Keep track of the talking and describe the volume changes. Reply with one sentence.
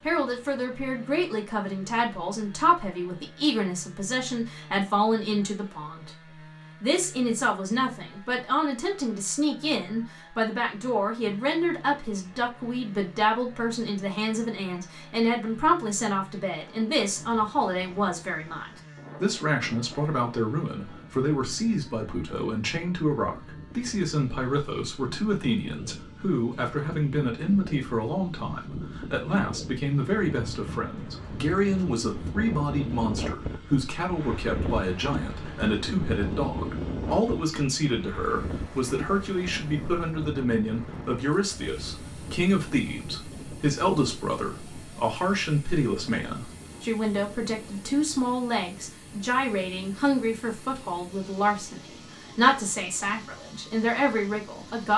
The volume of the talking stays about the same.